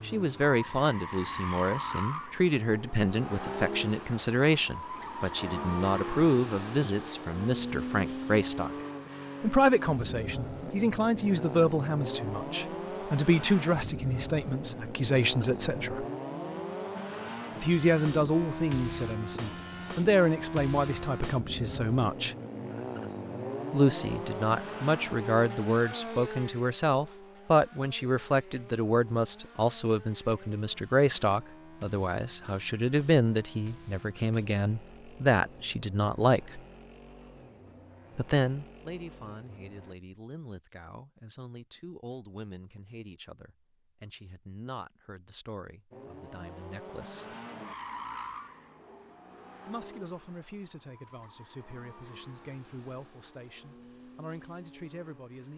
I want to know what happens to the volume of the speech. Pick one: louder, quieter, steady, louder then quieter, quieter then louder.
quieter.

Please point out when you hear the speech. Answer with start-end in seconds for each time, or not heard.
0.0-8.8, 9.4-16.1, 17.6-22.4, 23.7-36.6, 38.1-47.4, 49.6-55.5.